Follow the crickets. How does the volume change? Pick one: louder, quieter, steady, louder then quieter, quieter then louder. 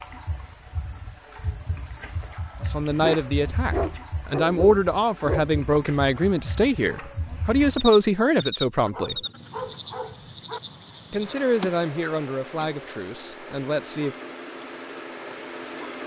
quieter.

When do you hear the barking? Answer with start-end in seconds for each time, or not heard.
3.0-5.6, 8.8-10.6.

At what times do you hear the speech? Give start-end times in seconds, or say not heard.
2.6-9.2, 11.1-14.2.